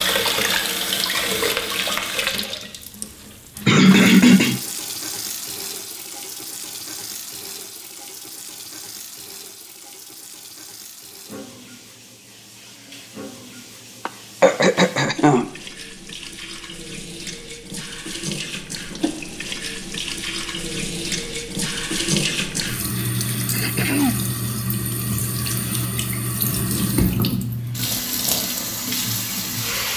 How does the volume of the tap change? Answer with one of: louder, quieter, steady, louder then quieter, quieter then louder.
quieter then louder.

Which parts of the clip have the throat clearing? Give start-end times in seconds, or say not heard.
3.6-4.6, 14.1-15.5, 23.5-24.1.